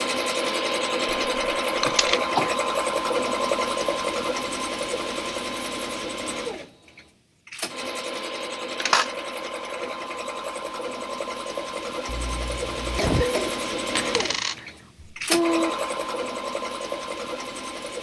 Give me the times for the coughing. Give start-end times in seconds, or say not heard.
1.9-2.5, 12.1-13.5.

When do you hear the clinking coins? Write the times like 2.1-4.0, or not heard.
1.4-2.2, 8.8-9.5, 13.9-15.7.